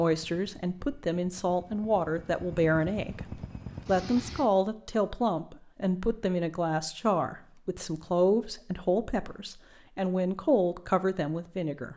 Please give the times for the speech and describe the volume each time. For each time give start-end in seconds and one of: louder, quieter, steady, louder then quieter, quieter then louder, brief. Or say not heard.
0.0-11.9 steady.